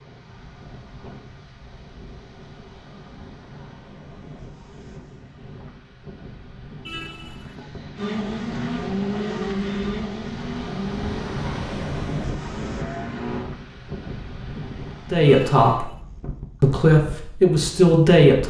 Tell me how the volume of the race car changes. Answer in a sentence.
The volume of the race car goes down.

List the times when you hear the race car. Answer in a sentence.
You can hear the race car from 8.0 to 13.5 s.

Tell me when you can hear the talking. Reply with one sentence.
You can hear the talking from 15.1 to 15.8 s and from 16.6 to 18.4 s.